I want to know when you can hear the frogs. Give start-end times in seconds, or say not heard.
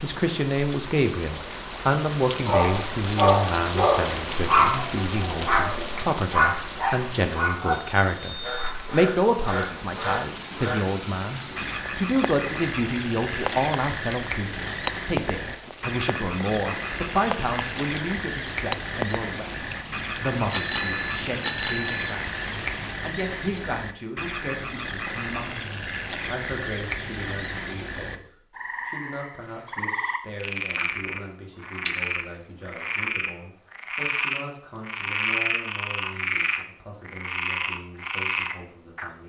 8.4-39.1.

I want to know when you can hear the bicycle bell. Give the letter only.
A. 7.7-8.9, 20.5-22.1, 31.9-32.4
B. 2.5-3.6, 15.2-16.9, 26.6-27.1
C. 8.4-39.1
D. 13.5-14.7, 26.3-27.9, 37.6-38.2
A.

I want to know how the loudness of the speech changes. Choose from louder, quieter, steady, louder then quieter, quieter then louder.
quieter.